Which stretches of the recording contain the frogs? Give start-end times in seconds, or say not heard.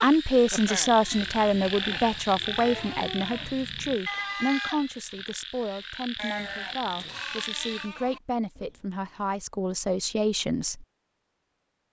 0.0-7.9.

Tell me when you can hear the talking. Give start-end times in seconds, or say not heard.
0.0-10.8.